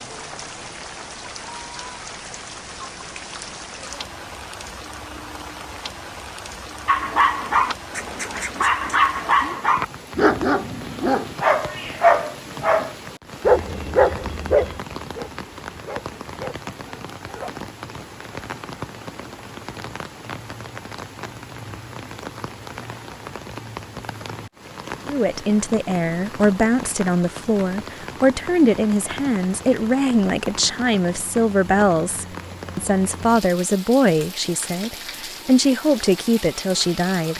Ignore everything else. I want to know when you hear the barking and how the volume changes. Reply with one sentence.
The barking can be heard from 6.8 to 17.6 s, getting quieter.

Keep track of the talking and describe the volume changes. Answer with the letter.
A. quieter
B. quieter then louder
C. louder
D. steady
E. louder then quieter
D.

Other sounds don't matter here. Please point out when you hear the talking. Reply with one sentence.
You can hear the talking from 25.1 to 37.3 s.